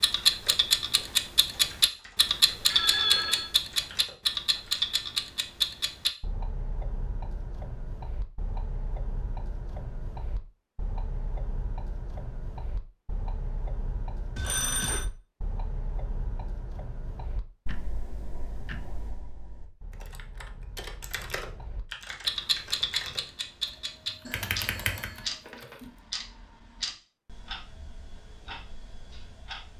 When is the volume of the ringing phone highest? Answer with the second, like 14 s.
3 s.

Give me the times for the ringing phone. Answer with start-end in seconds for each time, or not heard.
2.6-3.5, 14.3-15.1, 24.2-25.9.